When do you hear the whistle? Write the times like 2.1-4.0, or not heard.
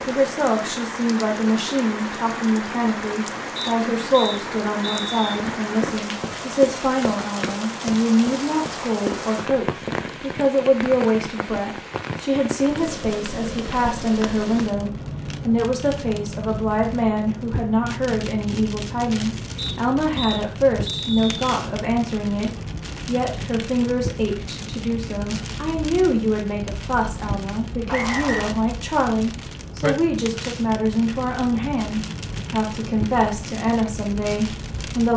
3.5-5.2, 19.6-21.4, 27.9-28.5.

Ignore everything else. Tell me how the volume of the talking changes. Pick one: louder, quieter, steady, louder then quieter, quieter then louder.
steady.